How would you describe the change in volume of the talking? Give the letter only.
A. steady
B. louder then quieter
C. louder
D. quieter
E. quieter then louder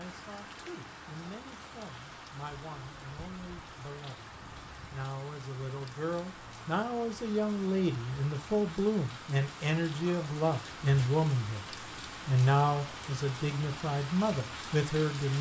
C.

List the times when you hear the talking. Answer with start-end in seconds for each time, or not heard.
0.0-11.7, 12.2-15.3.